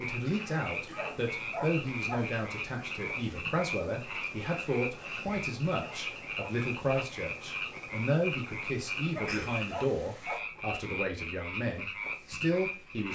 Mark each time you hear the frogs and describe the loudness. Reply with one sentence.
The frogs can be heard from 0.0 to 13.0 s, at a steady volume.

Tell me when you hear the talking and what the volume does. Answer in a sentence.
The talking can be heard from 0.0 to 13.0 s, at a steady volume.